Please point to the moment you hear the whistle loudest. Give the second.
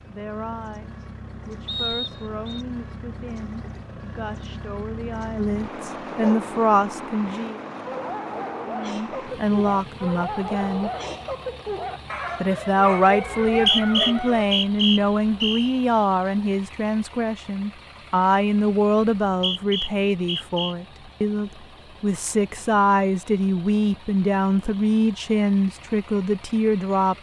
14 s.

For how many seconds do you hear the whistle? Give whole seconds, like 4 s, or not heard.
5 s.